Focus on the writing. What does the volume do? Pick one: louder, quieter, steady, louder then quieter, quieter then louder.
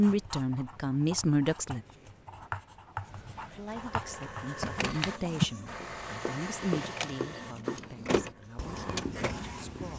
louder then quieter.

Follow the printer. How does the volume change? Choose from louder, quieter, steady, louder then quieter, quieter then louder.
steady.